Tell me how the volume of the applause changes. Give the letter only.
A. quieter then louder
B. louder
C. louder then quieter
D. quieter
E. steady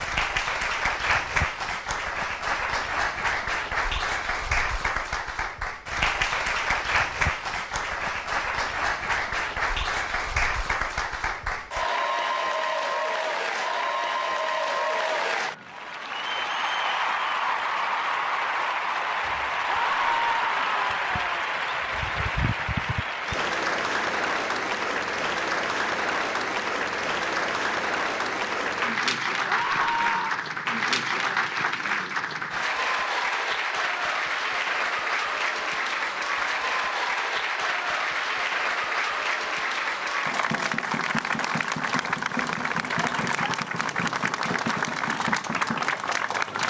E.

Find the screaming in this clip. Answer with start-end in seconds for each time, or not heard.
19.6-21.5, 29.4-30.4.